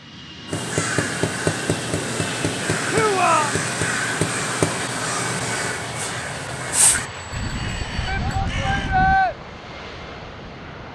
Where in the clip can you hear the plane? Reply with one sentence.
The plane can be heard from 0.0 to 10.9 s.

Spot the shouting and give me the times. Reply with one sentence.
The shouting can be heard from 2.9 to 3.5 s and from 8.1 to 9.3 s.